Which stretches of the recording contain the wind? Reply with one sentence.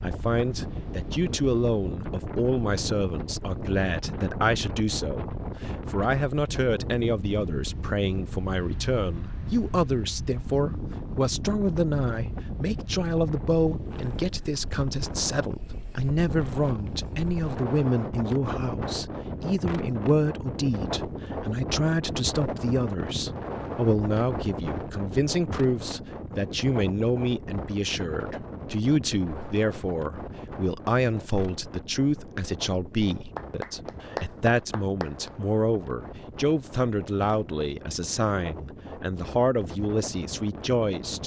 The wind can be heard from 0.0 to 41.2 s.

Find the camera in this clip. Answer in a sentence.
The camera can't be heard in this clip.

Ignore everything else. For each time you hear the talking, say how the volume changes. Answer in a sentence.
The talking can be heard from 0.0 to 41.2 s, at a steady volume.